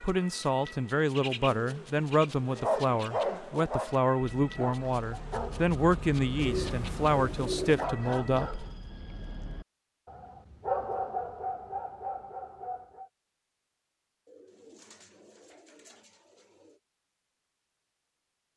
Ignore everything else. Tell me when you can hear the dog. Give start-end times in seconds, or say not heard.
2.5-13.1.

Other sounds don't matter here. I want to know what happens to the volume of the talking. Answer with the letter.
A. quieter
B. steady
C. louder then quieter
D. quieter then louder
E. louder
B.